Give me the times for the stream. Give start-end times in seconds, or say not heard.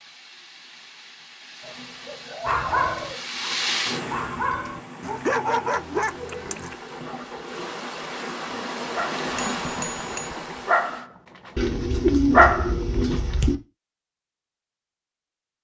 0.0-11.1.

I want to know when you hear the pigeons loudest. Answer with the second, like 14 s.
12 s.